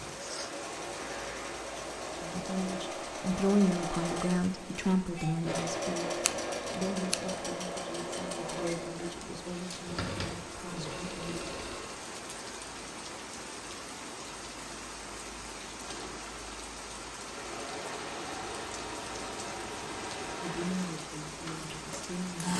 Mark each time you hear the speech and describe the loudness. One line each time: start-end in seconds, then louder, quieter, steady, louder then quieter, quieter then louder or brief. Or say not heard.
2.1-11.4 quieter
20.4-22.5 brief.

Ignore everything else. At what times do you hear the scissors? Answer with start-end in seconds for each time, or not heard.
6.2-7.3.